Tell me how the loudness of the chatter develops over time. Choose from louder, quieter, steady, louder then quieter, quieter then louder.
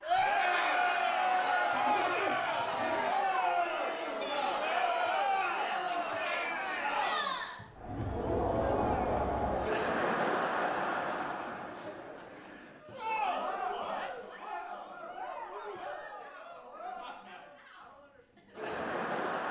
quieter.